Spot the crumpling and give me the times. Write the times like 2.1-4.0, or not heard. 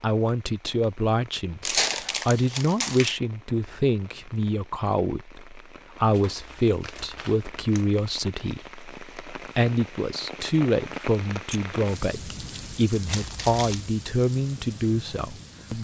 1.6-3.1, 6.0-7.8, 13.1-13.9.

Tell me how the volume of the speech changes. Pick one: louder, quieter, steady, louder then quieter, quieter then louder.
steady.